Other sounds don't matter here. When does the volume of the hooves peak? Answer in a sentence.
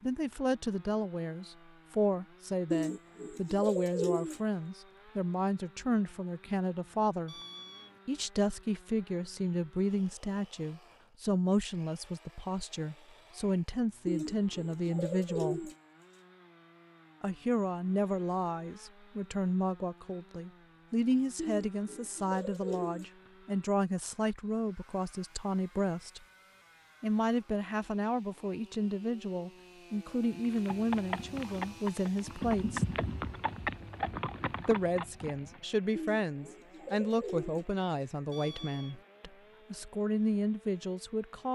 The volume of the hooves peaks at 33 seconds.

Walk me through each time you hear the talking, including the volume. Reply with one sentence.
The talking can be heard from 0.0 to 7.3 s, at a steady volume; from 8.1 to 15.7 s, at a steady volume; from 17.2 to 26.2 s, at a steady volume; from 27.0 to 32.9 s, at a steady volume; and from 34.6 to 41.5 s, getting quieter then louder.